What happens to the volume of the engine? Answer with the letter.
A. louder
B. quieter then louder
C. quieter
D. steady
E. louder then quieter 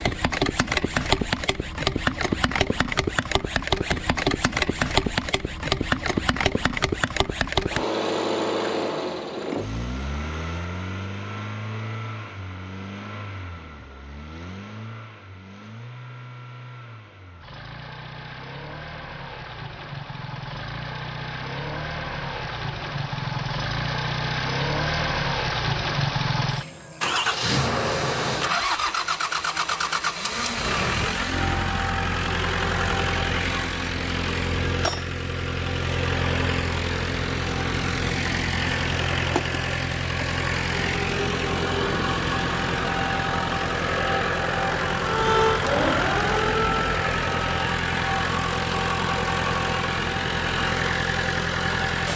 B.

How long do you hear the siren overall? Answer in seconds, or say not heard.
2 s.